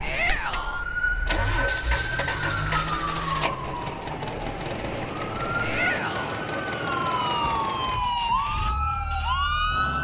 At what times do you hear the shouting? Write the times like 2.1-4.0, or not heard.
0.0-0.8, 5.6-6.5.